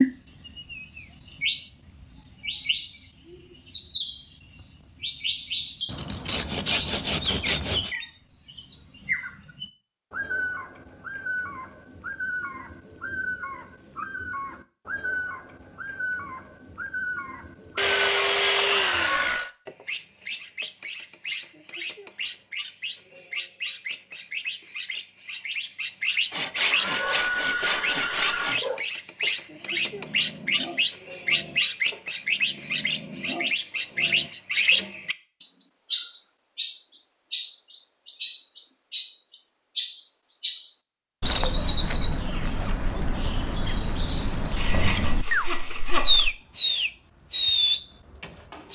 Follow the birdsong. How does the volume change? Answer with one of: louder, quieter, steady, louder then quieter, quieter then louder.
louder.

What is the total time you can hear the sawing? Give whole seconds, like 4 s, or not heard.
8 s.